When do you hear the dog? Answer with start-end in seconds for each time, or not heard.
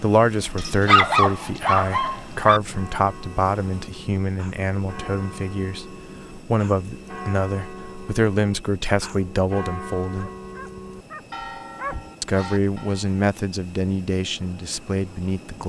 0.6-2.6, 10.2-12.1.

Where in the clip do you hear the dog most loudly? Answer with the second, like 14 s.
1 s.